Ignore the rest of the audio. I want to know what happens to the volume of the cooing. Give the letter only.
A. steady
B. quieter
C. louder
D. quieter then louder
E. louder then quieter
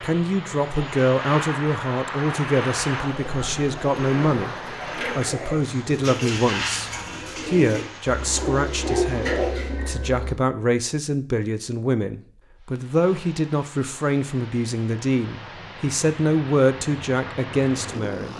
C.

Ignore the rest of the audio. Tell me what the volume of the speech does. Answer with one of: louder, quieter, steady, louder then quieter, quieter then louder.
steady.